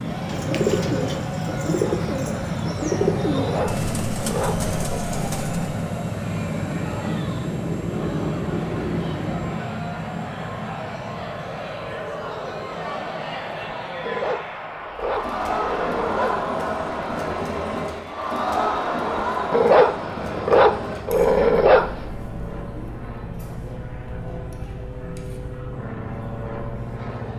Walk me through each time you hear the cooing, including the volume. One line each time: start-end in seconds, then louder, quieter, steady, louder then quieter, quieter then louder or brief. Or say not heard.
0.0-5.8 quieter.